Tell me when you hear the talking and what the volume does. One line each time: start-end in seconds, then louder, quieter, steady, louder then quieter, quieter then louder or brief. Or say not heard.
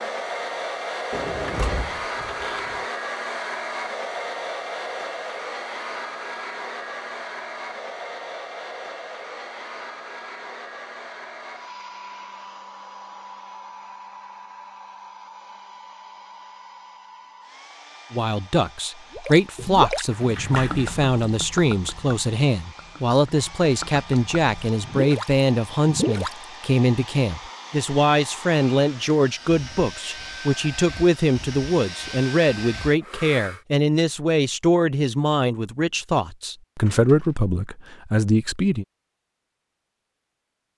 18.1-38.9 steady.